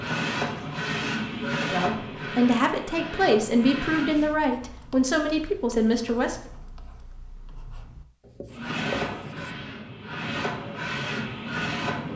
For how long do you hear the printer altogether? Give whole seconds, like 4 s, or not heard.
8 s.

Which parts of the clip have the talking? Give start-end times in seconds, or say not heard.
1.6-6.3.